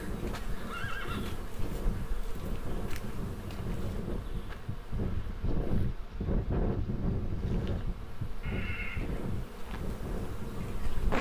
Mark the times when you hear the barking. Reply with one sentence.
You can't hear the barking here.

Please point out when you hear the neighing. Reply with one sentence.
The neighing can be heard from 0.5 to 1.4 s and from 8.4 to 9.1 s.